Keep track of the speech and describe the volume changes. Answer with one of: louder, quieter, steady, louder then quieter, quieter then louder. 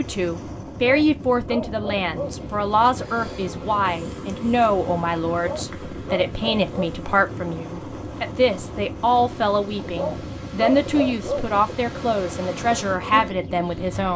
steady.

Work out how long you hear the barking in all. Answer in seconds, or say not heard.
5 s.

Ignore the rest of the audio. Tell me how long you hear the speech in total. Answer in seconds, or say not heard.
14 s.